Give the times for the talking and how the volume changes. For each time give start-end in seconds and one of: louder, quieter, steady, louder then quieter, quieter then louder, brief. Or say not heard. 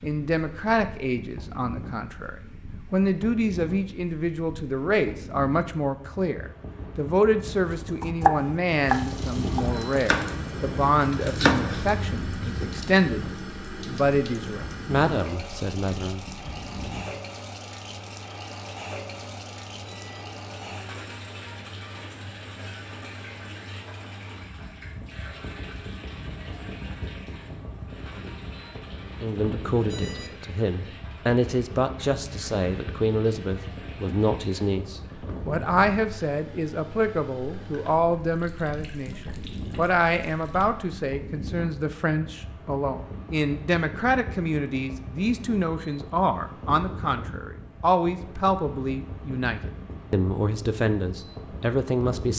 0.0-16.2 steady
29.1-52.3 steady.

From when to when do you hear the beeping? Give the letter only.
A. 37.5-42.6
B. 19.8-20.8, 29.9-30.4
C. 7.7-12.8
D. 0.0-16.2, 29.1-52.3
B.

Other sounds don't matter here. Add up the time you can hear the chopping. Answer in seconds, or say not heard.
5 s.